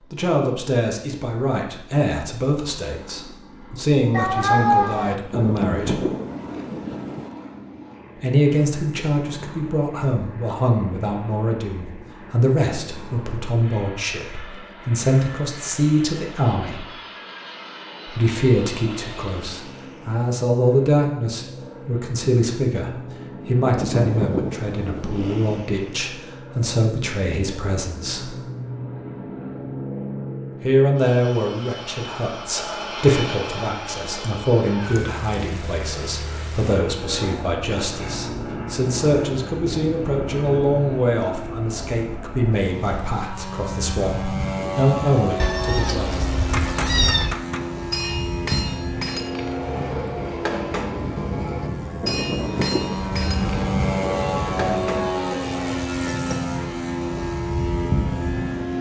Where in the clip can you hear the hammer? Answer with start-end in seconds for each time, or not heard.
46.5-56.4.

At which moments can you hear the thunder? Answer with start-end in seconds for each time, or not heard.
5.3-7.3, 23.6-25.5, 52.0-54.0.